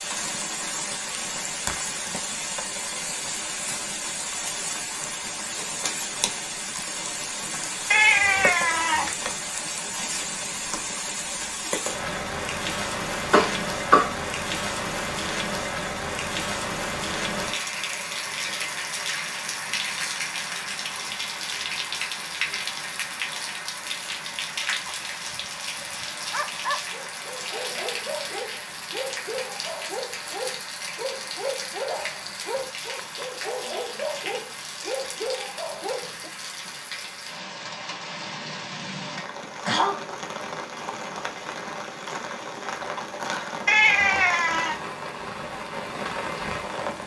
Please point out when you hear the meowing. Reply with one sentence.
The meowing can be heard from 7.9 to 9.2 s and from 43.6 to 44.8 s.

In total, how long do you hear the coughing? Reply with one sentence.
You can hear the coughing for 2 seconds altogether.